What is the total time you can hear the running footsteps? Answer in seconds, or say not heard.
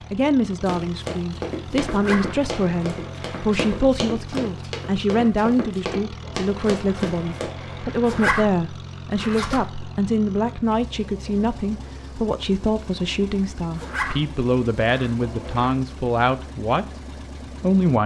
7 s.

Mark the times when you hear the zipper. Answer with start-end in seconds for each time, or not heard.
1.9-2.4, 8.1-9.8, 13.8-15.1.